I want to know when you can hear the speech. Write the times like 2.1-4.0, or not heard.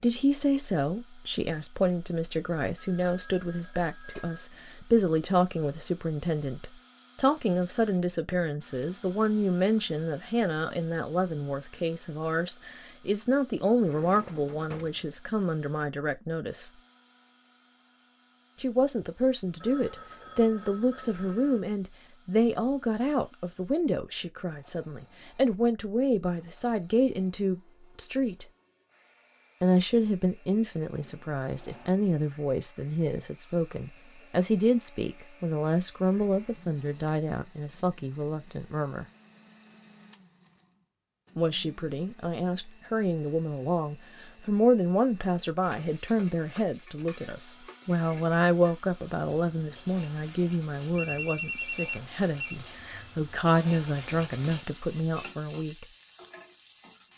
0.0-16.7, 18.6-28.4, 29.6-39.0, 41.4-55.9.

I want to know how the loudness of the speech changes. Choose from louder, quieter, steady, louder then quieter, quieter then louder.
steady.